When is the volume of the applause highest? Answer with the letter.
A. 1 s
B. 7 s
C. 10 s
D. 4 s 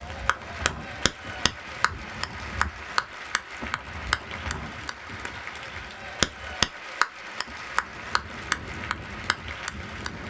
B.